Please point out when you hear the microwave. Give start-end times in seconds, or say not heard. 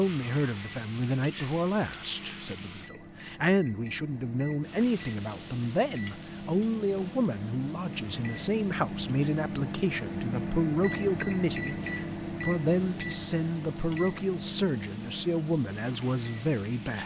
0.0-17.0.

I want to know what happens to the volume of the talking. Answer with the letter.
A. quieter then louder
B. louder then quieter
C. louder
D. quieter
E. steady
E.